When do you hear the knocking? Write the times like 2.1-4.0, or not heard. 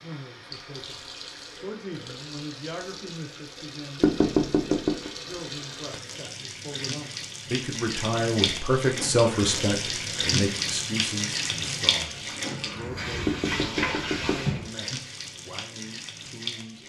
4.0-5.1, 13.2-14.4.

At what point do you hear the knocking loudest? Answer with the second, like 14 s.
4 s.